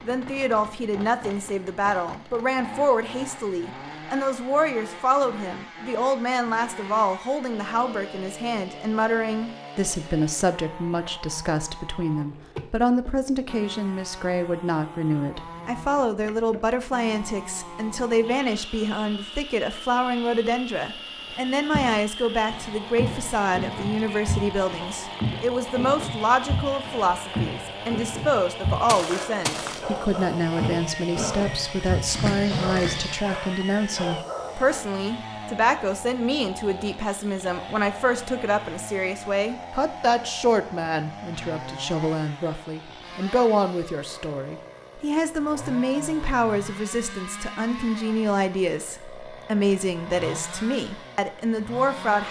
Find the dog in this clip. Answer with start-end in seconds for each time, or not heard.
29.0-34.9.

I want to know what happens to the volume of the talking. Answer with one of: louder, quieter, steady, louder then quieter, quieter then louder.
steady.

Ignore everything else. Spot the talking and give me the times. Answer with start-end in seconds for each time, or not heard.
0.0-52.2.